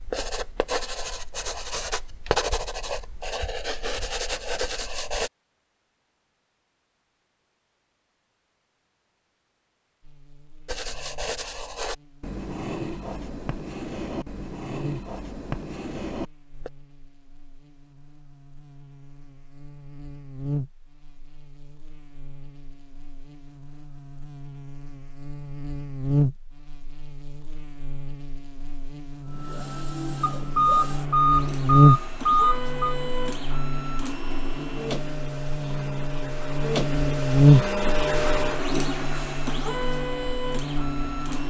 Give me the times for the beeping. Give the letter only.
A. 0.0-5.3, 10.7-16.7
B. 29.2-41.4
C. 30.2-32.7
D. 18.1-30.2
C.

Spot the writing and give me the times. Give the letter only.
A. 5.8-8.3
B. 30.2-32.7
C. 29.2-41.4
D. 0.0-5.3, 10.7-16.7
D.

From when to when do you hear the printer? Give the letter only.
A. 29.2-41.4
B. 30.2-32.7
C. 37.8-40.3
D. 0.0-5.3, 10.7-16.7
A.